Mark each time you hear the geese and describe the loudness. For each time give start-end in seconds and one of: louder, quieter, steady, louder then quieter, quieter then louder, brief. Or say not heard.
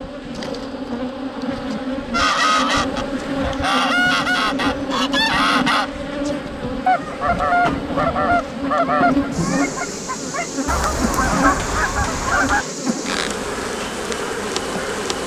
2.1-12.7 steady.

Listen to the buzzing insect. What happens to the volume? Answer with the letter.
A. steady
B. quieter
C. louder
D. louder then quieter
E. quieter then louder
A.